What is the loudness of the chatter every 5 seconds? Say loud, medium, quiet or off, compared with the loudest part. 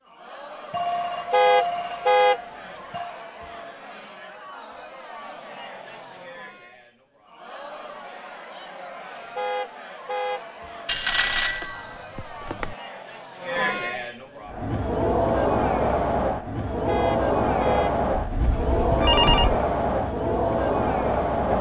quiet, quiet, medium, loud, loud.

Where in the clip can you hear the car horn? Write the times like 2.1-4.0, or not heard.
1.3-2.4, 9.3-10.4, 16.9-17.9.